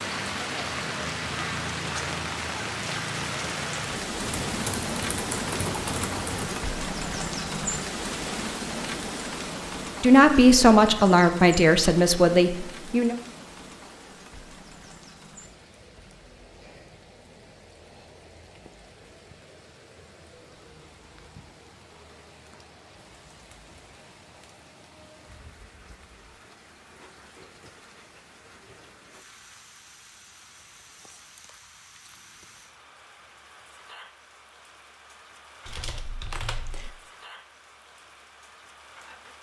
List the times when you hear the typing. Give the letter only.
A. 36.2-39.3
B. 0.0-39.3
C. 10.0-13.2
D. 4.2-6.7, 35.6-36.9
D.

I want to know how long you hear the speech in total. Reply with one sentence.
The speech can be heard for 3 seconds in total.